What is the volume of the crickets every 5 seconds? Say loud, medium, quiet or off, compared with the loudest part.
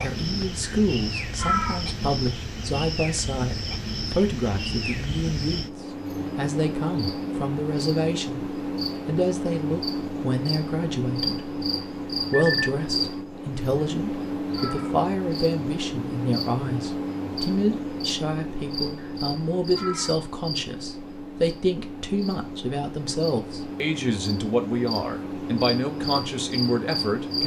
loud, loud, loud, loud, medium, loud.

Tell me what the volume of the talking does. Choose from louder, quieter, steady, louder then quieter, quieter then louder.
steady.